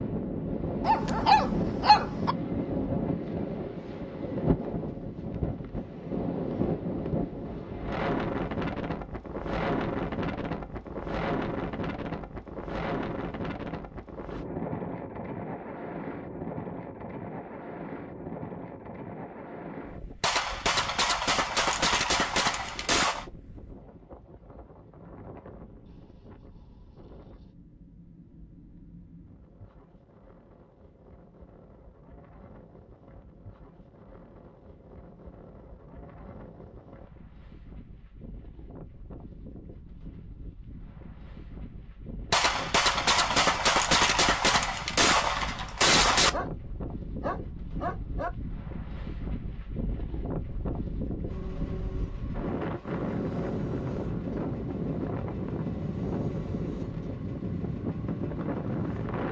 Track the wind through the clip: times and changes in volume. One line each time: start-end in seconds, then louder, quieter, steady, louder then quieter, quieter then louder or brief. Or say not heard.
0.0-59.2 quieter then louder.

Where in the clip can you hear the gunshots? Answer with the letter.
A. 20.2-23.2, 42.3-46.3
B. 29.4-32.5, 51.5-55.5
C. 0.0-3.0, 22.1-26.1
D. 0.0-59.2
A.